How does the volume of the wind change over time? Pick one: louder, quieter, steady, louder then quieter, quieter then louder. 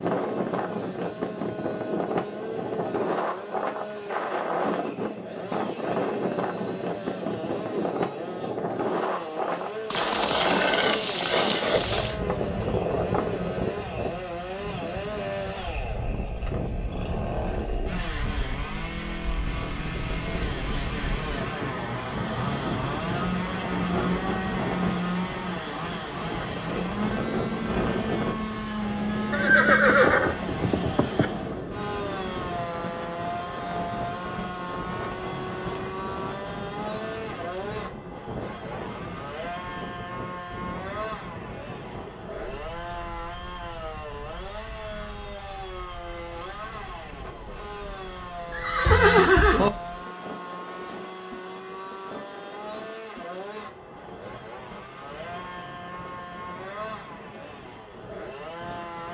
quieter.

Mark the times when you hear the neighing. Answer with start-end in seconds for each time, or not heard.
9.9-12.2, 29.3-31.3, 48.5-49.7.